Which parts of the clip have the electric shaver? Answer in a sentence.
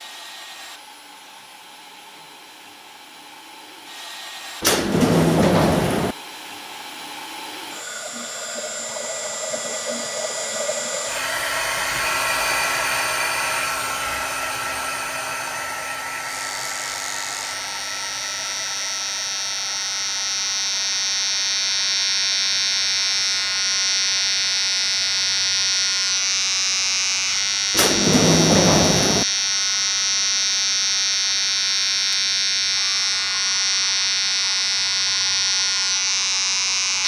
The electric shaver can be heard from 16.1 to 37.0 s.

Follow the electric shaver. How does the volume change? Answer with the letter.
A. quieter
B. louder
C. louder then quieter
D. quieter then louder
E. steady
B.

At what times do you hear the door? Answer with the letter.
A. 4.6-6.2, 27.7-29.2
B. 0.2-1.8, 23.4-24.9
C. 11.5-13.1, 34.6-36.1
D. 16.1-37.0
A.